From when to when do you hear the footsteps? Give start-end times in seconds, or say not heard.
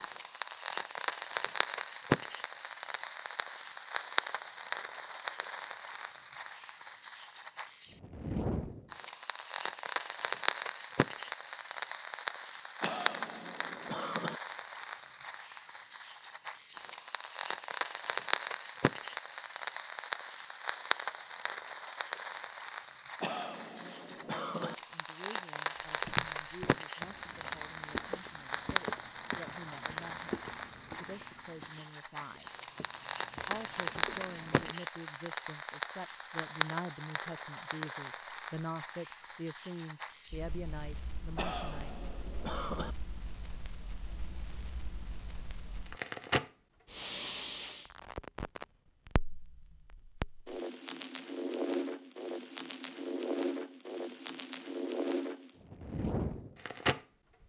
25.8-34.8.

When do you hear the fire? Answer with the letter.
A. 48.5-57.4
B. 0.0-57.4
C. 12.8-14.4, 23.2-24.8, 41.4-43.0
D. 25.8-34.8
B.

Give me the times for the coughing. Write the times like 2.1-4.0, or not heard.
12.8-14.4, 23.2-24.8, 41.4-43.0.